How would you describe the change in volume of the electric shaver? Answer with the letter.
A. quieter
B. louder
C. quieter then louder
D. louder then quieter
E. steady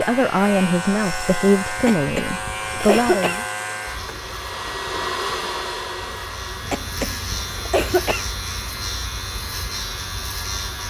C.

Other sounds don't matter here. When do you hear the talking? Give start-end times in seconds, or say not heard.
0.0-3.5.